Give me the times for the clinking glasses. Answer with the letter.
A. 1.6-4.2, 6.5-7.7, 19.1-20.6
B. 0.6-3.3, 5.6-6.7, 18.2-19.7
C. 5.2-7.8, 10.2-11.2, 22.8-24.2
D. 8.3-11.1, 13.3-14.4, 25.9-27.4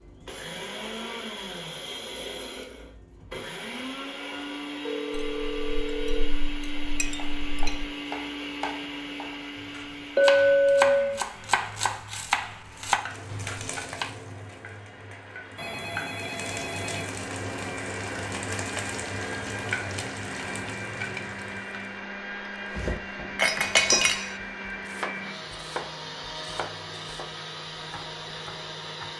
C.